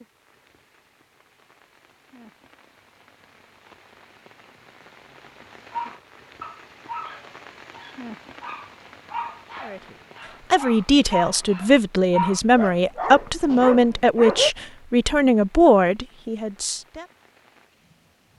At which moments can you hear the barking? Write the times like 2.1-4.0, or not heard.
5.7-14.5.